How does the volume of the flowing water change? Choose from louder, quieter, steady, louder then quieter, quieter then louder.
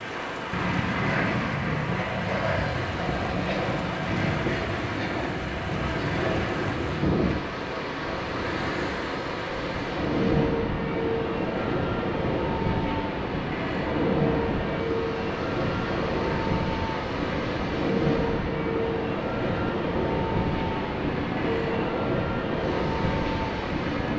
steady.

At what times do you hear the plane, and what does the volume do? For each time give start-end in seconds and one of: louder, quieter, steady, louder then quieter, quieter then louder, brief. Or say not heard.
0.0-24.1 steady.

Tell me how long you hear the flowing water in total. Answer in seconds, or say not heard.
24 s.